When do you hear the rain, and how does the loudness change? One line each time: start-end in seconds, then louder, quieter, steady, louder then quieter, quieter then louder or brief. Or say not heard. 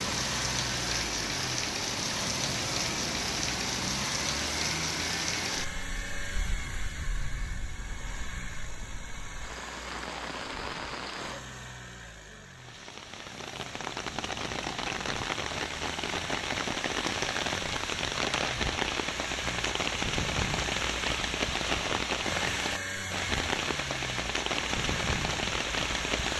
0.0-26.3 quieter then louder.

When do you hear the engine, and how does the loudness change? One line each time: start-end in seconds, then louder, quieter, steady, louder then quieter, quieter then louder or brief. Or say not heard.
0.0-26.3 quieter then louder.